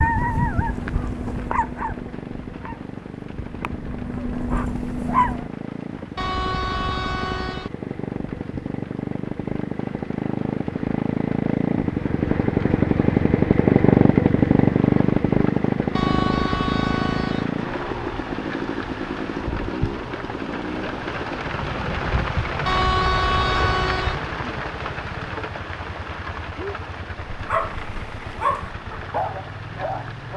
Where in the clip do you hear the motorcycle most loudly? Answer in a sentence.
The volume of the motorcycle peaks at 14 seconds.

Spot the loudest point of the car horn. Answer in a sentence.
The loudest moment of the car horn is at 23 seconds.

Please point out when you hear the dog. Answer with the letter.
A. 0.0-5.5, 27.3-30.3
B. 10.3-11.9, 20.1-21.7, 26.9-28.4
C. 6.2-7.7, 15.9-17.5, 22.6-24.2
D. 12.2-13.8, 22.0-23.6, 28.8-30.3
A.